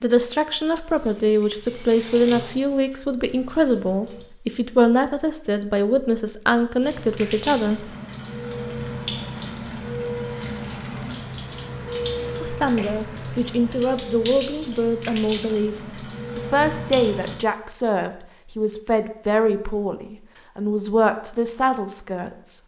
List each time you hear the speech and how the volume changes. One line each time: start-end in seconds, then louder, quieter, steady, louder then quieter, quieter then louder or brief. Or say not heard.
0.0-7.8 steady
12.4-22.6 steady.